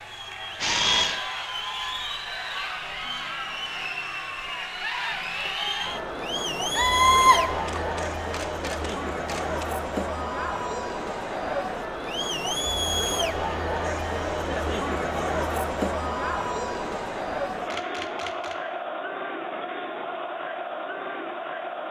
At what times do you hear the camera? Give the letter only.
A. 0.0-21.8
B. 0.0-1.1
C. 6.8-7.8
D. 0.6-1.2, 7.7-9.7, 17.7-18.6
D.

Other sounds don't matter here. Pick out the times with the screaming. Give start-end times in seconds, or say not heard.
6.8-7.8.